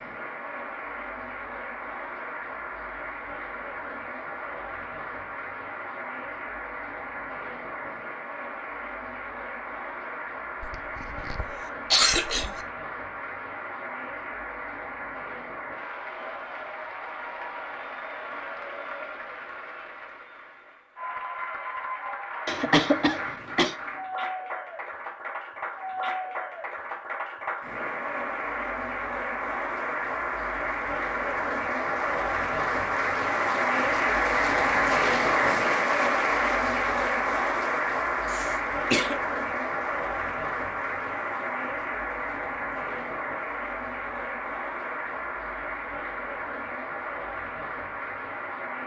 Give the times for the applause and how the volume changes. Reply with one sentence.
You can hear the applause from 0.0 to 48.8 s, getting louder then quieter.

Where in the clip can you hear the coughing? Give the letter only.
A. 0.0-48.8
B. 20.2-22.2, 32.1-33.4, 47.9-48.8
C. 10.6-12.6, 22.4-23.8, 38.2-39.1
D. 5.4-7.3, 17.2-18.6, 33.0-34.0
C.